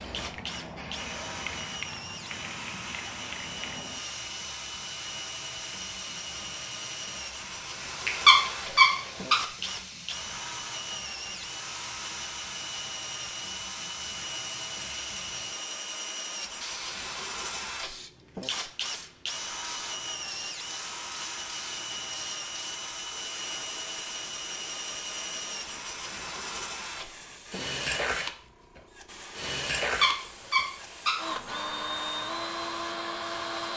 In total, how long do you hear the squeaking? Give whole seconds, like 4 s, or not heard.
3 s.